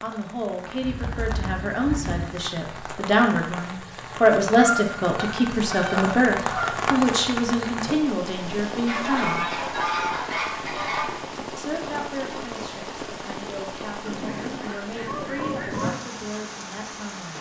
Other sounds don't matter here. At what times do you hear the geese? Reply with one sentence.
The geese can be heard from 0.8 to 2.4 s, from 4.5 to 6.8 s, from 8.8 to 11.2 s and from 14.1 to 15.9 s.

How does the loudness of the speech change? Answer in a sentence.
The volume of the speech goes up, then down.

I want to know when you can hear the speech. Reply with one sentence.
You can hear the speech from 0.0 to 9.4 s and from 11.6 to 17.3 s.